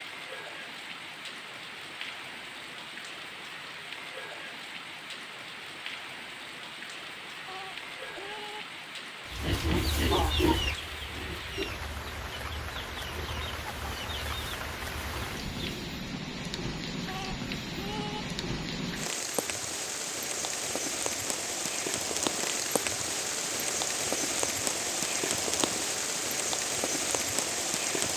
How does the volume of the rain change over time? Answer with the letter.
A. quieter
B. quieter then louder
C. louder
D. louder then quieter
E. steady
C.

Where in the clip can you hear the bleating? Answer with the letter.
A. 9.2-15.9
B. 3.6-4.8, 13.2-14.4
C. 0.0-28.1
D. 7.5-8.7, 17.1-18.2
D.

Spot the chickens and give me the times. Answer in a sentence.
The chickens can be heard from 9.2 to 15.9 s.